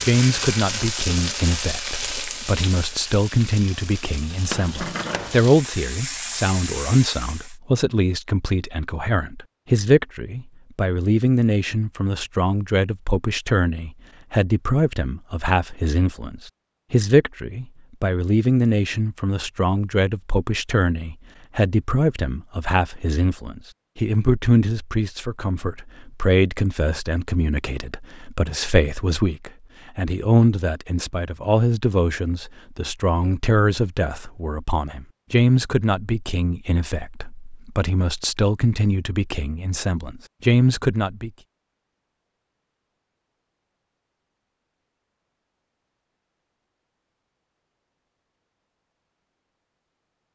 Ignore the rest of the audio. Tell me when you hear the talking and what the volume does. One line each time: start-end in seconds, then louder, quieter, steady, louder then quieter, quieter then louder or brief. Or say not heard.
0.1-41.3 steady.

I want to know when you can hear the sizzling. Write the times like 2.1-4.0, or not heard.
0.0-7.5.